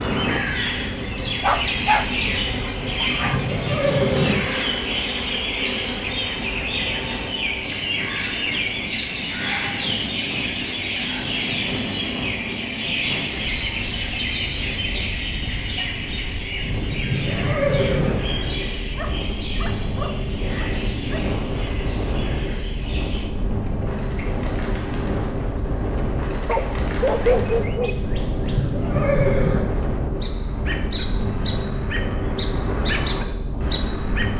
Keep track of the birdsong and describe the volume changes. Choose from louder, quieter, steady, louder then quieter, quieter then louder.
quieter then louder.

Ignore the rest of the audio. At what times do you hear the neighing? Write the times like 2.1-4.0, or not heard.
2.8-4.4, 16.8-18.1, 28.2-29.6.